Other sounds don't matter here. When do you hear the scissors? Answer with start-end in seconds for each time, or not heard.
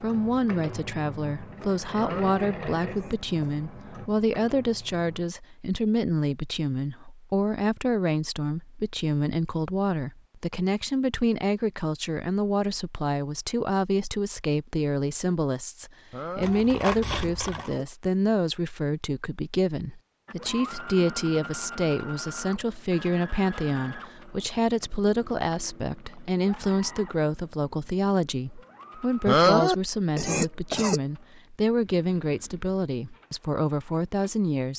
16.4-17.7.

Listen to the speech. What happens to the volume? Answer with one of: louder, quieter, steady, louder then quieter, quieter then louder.
steady.